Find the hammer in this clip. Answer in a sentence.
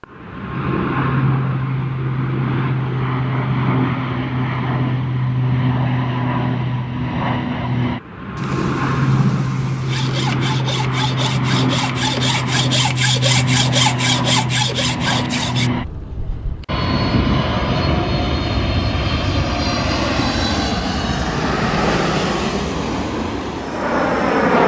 The hammer can't be heard in this clip.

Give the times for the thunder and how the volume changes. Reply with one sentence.
You can hear the thunder briefly from 8.3 to 10.1 s; and from 16.8 to 21.0 s, getting quieter.